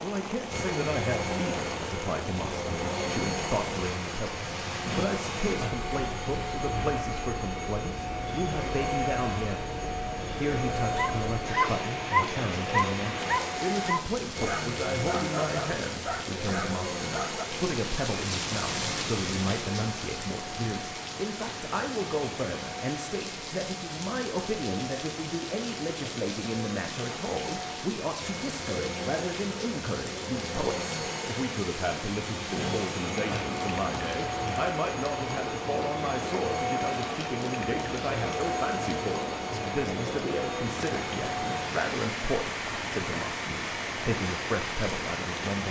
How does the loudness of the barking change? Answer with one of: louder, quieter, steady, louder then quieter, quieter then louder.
quieter.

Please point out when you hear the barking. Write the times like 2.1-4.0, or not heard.
10.9-17.4.